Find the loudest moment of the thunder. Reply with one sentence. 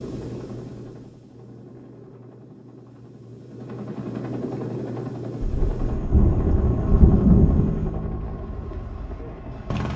The loudest moment of the thunder is at 7 seconds.